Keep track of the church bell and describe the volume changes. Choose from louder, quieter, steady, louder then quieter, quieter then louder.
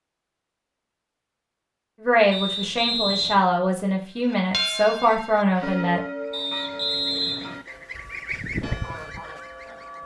quieter then louder.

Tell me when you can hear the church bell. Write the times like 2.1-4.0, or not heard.
4.1-10.0.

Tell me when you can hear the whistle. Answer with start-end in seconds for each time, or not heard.
2.3-3.5, 6.3-7.6.